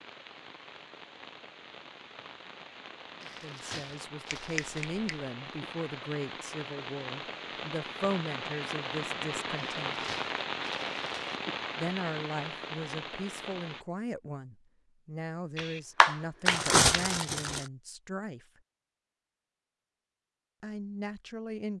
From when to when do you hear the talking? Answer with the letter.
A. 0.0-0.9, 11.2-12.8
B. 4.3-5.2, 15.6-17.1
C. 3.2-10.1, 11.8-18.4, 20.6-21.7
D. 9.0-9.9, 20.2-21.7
C.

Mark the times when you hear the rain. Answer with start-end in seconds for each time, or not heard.
0.0-13.8.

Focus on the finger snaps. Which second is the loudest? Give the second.
16 s.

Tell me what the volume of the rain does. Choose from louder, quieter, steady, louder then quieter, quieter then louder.
louder.